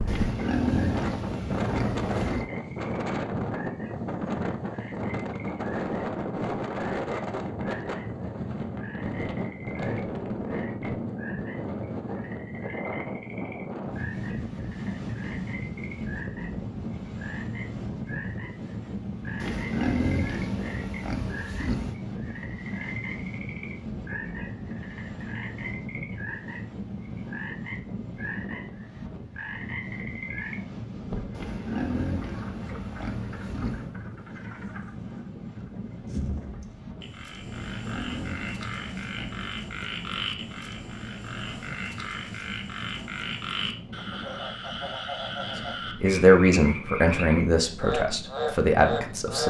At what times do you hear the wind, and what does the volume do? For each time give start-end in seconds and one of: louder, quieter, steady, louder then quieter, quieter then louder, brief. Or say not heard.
0.0-49.4 quieter.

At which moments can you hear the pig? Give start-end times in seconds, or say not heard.
0.1-2.5, 19.4-22.0, 31.3-34.0, 37.5-39.5.